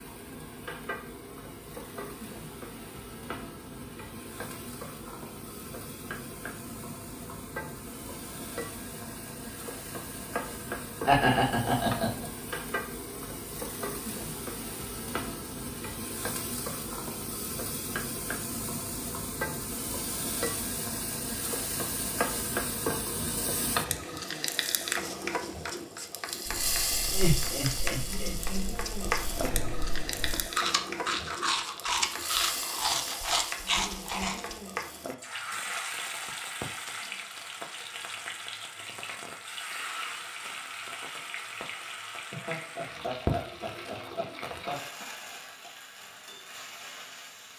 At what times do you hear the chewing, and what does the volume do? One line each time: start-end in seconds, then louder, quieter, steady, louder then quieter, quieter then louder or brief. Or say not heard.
26.4-34.5 louder.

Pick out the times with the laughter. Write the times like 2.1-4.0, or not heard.
11.1-12.2, 27.1-28.4, 42.3-44.9.